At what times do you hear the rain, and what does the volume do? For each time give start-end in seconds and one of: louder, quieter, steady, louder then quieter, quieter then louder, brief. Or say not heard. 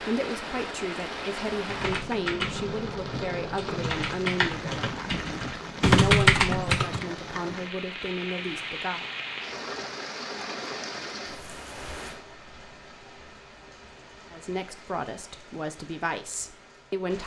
0.0-17.2 quieter.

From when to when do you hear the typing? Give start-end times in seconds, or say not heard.
1.6-7.0.